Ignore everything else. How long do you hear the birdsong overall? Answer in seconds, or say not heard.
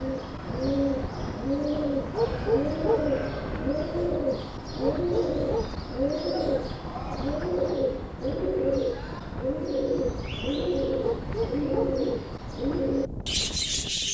14 s.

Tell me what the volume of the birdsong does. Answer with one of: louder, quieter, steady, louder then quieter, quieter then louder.
steady.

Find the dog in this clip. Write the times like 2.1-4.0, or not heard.
2.1-3.1, 4.8-5.8, 11.0-11.9.